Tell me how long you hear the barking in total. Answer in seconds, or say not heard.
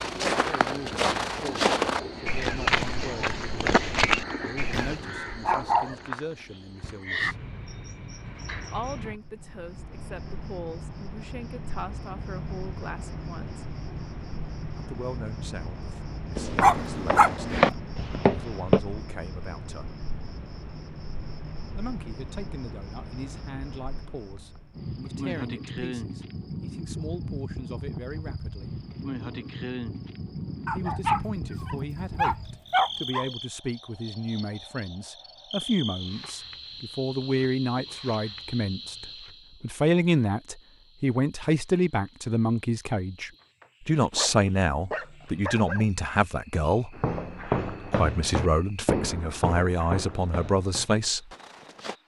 7 s.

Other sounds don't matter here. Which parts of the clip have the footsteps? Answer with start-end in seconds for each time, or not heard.
0.0-5.0, 16.4-18.8, 47.0-52.0.